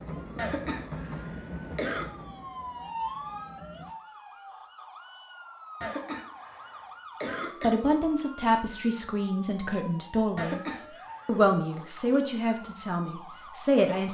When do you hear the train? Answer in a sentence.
The train can be heard from 0.0 to 4.0 s.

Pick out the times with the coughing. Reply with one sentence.
The coughing can be heard from 0.3 to 2.1 s, from 5.8 to 7.8 s and from 10.3 to 11.8 s.